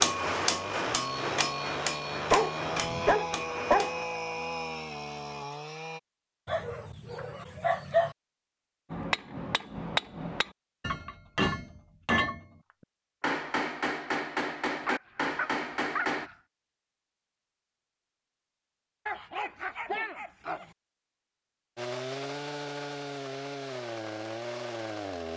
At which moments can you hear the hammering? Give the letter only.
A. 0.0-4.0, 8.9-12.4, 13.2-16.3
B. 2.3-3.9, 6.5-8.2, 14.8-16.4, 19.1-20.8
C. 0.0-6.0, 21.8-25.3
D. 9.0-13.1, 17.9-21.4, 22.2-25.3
A.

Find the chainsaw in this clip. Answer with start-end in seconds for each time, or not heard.
0.0-6.0, 21.8-25.3.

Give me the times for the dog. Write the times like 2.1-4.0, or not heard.
2.3-3.9, 6.5-8.2, 14.8-16.4, 19.1-20.8.